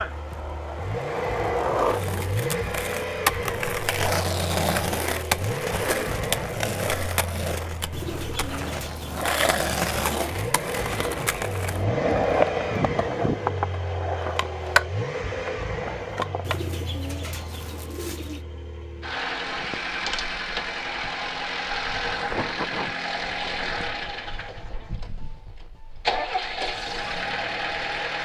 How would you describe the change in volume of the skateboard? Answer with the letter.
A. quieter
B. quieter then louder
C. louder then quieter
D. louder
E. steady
E.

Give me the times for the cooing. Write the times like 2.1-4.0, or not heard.
7.9-9.4, 16.4-18.4.